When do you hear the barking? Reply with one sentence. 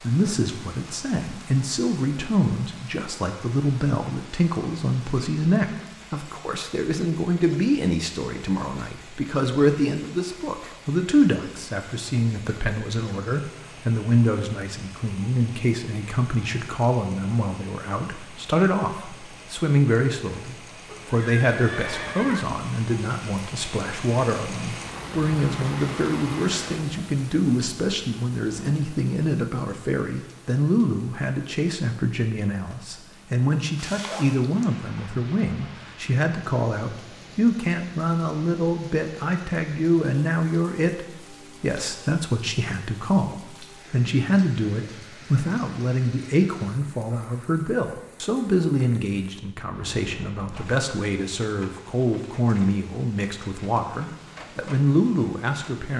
You can't hear the barking here.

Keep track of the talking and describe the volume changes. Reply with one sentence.
The loudness of the talking stays about the same.